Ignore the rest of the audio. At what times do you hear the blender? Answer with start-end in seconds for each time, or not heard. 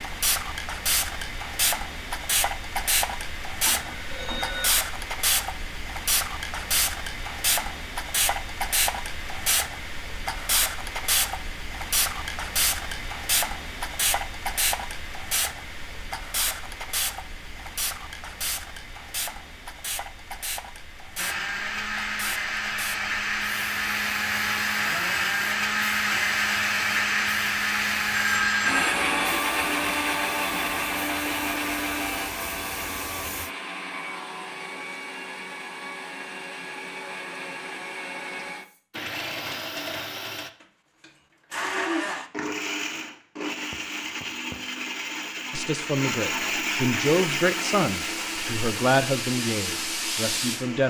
21.1-50.8.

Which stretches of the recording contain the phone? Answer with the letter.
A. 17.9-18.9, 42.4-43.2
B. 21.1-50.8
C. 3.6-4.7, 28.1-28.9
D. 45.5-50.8
C.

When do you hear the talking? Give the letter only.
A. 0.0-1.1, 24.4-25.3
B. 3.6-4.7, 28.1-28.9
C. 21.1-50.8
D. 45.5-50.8
D.